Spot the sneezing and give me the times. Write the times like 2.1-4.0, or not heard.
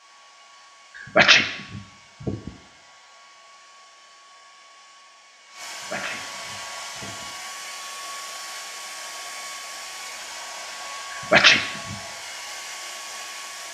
1.1-2.5, 5.9-7.2, 11.3-11.9.